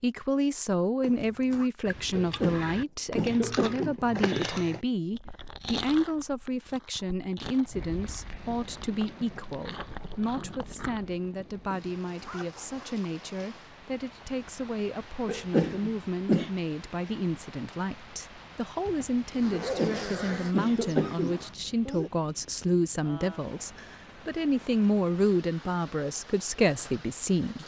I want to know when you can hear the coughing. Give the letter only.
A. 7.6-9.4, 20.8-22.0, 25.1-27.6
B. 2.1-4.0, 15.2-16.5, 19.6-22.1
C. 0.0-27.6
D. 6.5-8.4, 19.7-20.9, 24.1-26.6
B.